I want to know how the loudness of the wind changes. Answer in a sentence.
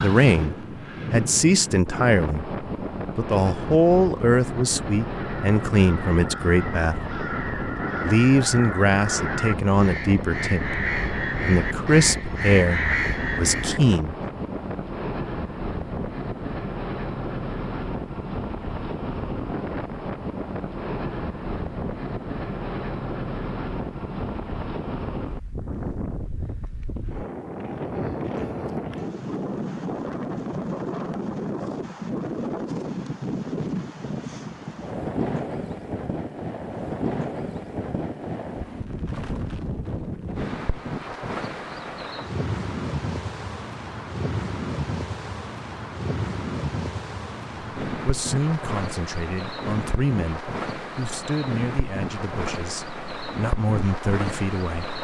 The loudness of the wind stays about the same.